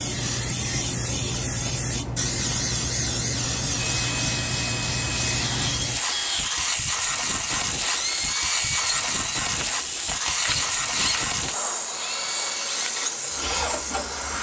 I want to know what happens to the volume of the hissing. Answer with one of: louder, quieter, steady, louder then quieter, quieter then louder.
steady.